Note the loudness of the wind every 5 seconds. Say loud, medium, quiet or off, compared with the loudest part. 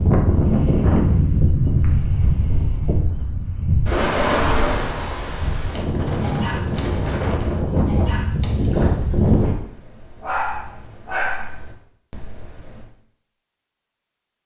loud, loud, off.